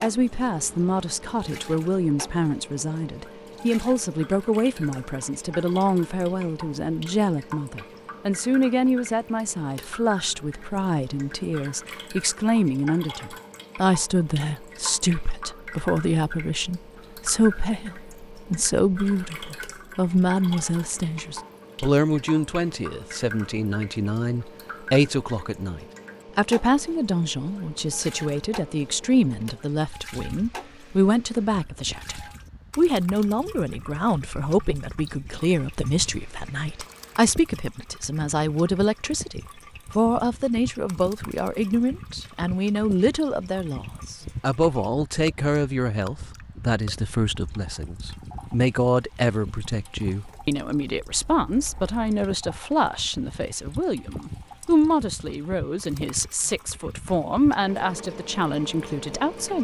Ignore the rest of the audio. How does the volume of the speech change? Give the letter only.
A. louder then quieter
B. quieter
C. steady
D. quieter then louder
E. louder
C.